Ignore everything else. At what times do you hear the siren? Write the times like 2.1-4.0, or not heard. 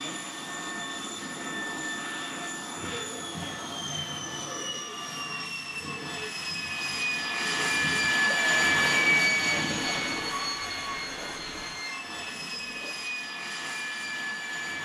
not heard.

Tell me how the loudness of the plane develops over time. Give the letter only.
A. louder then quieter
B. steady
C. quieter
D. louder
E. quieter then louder
A.